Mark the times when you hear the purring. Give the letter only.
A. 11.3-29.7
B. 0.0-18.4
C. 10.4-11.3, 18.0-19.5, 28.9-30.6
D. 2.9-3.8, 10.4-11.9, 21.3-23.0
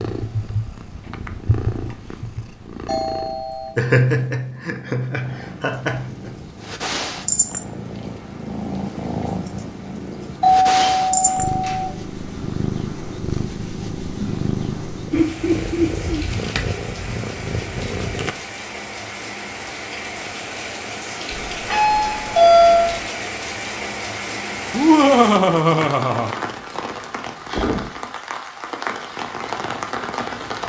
B.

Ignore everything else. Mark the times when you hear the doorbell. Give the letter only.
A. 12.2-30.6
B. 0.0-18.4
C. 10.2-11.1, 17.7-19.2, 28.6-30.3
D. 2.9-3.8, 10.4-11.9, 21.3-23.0
D.